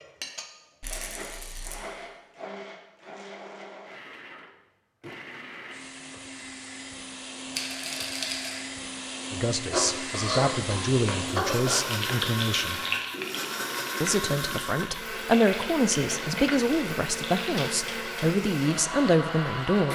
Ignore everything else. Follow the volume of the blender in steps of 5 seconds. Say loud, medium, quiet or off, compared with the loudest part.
medium, medium, loud, loud.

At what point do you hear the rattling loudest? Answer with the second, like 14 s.
8 s.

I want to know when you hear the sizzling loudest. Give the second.
12 s.